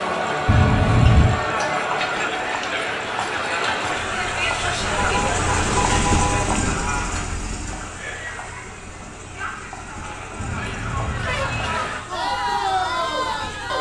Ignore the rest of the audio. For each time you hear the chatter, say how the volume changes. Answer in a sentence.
The chatter can be heard from 0.0 to 13.7 s, getting quieter then louder.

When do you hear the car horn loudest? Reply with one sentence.
The volume of the car horn peaks at 1 second.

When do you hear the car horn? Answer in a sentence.
The car horn can be heard from 0.5 to 1.4 s, from 5.0 to 6.5 s and from 10.3 to 11.8 s.